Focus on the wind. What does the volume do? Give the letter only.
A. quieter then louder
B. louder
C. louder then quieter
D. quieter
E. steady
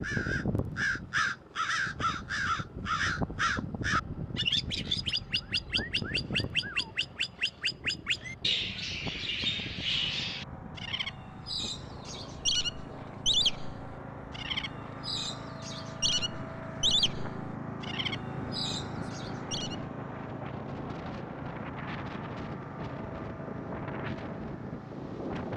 A.